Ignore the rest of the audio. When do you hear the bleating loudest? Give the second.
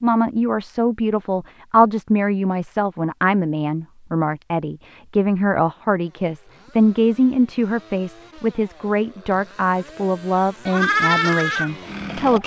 11 s.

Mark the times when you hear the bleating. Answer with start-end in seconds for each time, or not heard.
10.7-12.4.